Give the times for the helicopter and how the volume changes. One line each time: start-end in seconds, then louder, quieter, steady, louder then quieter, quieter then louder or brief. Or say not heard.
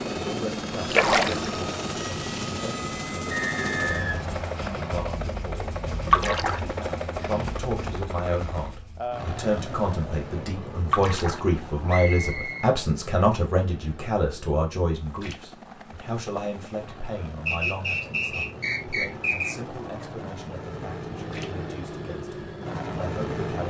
0.0-23.6 quieter then louder.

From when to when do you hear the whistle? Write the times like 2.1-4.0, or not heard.
3.3-5.0, 11.8-12.7, 17.4-19.5.